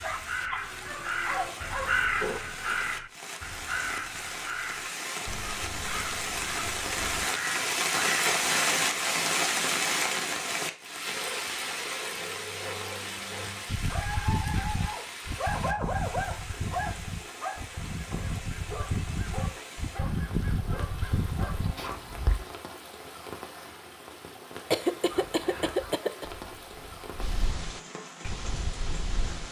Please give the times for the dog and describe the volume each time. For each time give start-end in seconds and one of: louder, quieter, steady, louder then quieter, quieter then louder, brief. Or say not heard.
0.0-2.4 brief
11.1-22.0 louder then quieter.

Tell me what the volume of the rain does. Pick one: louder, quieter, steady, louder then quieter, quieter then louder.
louder then quieter.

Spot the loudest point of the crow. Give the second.
2 s.